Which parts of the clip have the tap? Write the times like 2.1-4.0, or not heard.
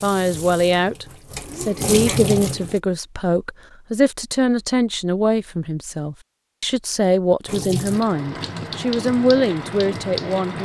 0.0-2.8, 7.5-10.6.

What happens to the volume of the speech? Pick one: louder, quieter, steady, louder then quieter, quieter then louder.
steady.